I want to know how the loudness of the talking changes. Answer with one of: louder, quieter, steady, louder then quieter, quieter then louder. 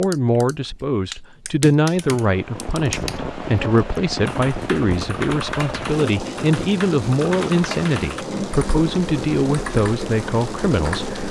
steady.